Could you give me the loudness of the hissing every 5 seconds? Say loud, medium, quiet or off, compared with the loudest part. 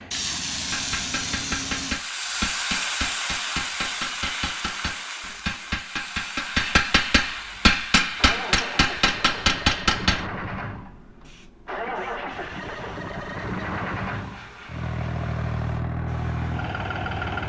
loud, medium, quiet, quiet.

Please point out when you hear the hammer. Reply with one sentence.
You can hear the hammer from 0.5 to 10.2 s.